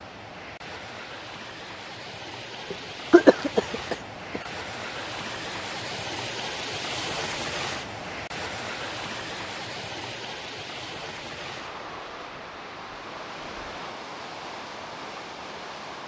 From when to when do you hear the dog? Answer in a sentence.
You can't hear the dog here.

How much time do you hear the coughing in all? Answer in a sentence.
You can hear the coughing for 2 seconds altogether.